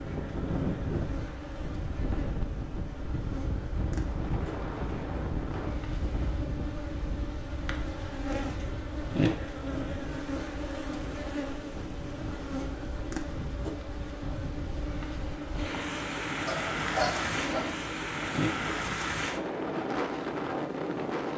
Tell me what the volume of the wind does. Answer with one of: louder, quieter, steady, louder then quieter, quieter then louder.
quieter then louder.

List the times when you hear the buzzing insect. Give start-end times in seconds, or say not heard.
0.0-21.3.